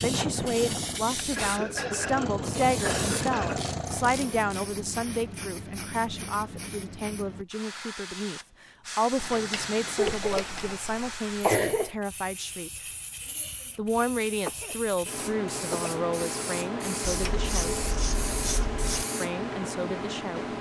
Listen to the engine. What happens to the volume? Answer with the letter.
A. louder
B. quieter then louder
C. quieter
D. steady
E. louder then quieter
B.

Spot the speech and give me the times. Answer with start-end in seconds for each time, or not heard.
0.0-12.7, 13.8-17.8, 19.2-20.4.